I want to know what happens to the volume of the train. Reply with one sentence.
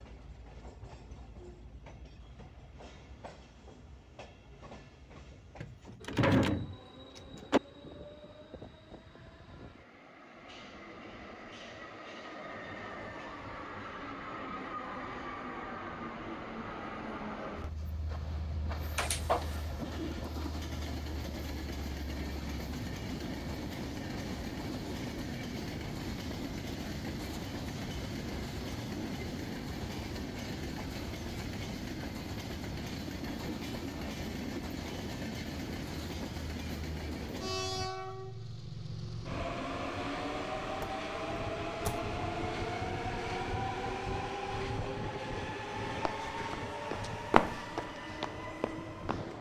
The loudness of the train goes up.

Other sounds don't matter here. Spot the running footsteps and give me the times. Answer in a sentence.
The running footsteps can be heard from 45.9 to 49.3 s.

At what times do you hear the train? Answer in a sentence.
The train can be heard from 0.0 to 49.3 s.